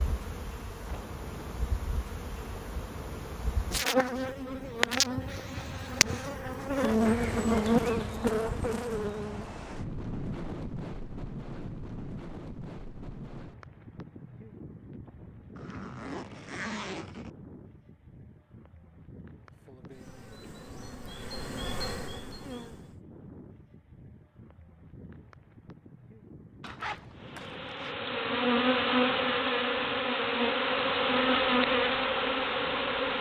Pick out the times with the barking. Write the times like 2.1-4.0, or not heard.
not heard.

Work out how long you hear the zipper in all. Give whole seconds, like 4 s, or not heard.
4 s.